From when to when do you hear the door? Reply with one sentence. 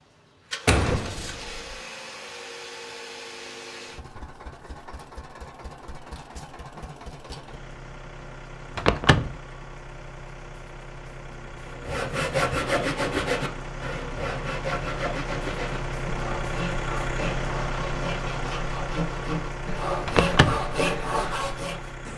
You can hear the door from 0.7 to 1.8 s, from 8.8 to 9.3 s and from 20.1 to 20.7 s.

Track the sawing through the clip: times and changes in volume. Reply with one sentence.
You can hear the sawing from 11.7 to 21.9 s, getting quieter then louder.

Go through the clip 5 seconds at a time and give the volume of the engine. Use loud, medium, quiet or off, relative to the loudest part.
medium, medium, medium, loud, medium.